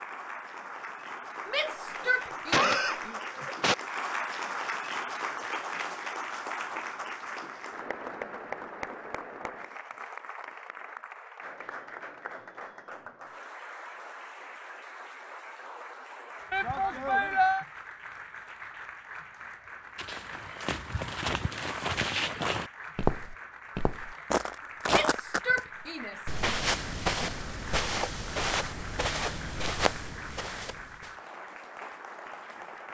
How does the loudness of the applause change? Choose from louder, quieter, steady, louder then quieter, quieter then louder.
quieter.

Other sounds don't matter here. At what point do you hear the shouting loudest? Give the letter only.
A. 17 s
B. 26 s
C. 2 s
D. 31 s
A.